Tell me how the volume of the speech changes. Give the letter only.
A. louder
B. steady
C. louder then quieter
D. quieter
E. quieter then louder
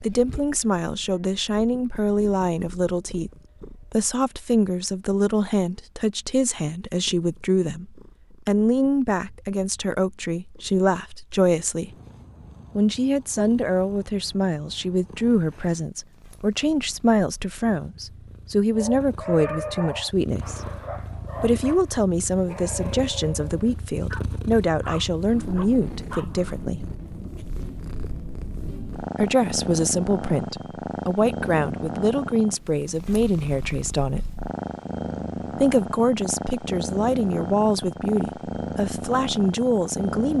B.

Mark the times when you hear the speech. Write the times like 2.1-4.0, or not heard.
0.0-3.3, 3.9-11.9, 12.8-20.6, 21.4-26.9, 29.2-34.2, 35.5-40.3.